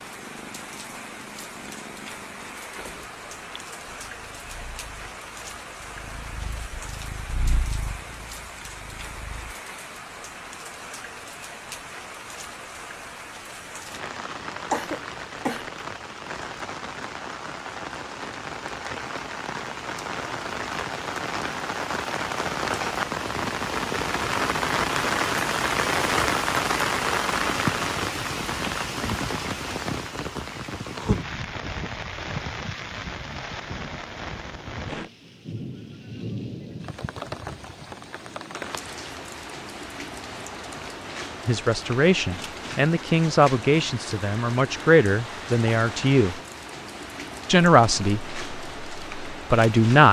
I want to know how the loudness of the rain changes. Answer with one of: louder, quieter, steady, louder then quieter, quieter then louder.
louder then quieter.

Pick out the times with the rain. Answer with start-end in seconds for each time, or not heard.
0.0-50.0.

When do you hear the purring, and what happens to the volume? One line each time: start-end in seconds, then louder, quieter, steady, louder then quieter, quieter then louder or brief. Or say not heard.
0.0-9.6 quieter then louder.